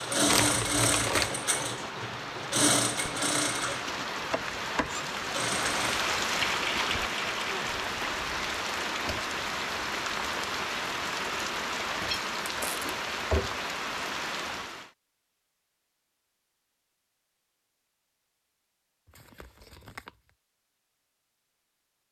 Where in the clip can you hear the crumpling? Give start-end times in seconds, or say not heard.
0.2-1.3, 12.4-12.9, 19.1-20.3.